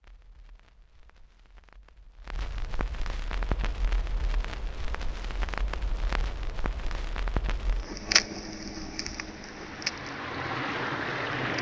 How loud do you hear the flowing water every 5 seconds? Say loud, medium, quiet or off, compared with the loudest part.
quiet, quiet, loud.